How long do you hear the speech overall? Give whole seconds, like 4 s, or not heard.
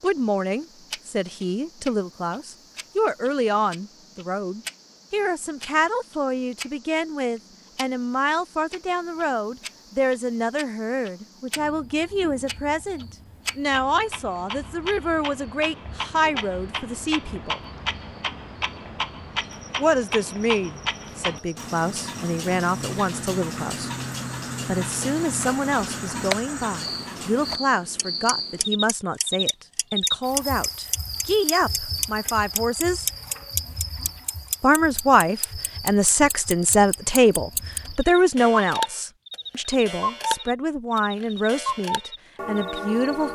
39 s.